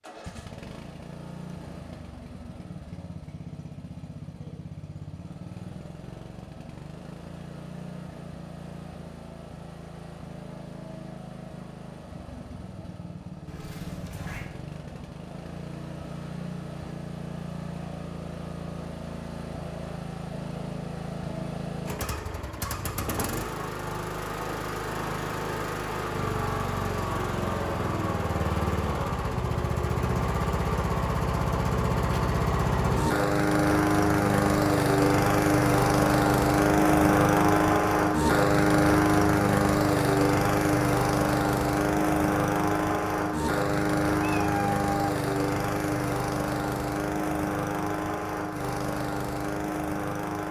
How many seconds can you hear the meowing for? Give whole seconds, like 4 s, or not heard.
2 s.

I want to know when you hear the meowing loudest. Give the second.
45 s.